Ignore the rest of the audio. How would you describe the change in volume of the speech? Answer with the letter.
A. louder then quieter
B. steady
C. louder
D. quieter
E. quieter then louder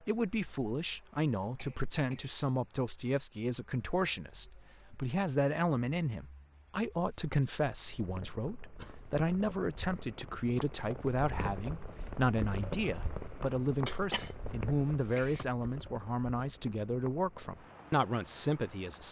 B.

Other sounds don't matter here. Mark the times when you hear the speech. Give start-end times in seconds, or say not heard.
0.0-19.0.